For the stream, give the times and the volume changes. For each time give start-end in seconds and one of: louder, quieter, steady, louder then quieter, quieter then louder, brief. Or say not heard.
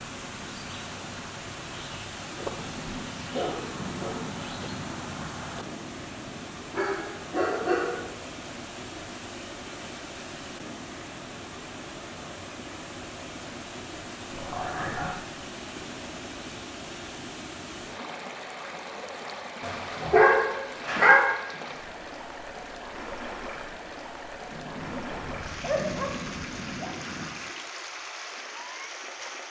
0.0-29.4 steady.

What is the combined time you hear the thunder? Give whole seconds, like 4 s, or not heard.
7 s.